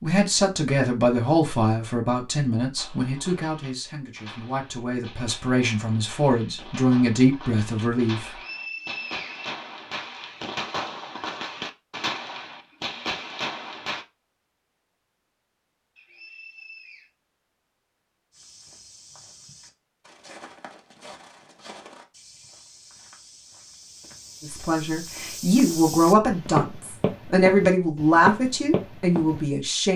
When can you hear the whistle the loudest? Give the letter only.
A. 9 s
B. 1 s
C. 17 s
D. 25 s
A.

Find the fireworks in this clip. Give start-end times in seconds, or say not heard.
2.8-14.1.